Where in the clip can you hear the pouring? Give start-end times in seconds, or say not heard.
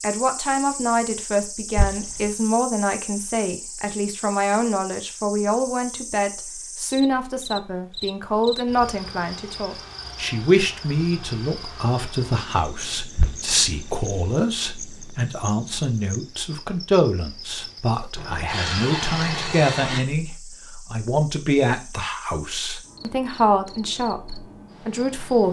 1.8-2.3, 13.2-14.3, 18.1-20.0.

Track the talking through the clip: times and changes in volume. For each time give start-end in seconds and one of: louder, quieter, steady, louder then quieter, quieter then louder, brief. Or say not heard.
0.0-25.4 steady.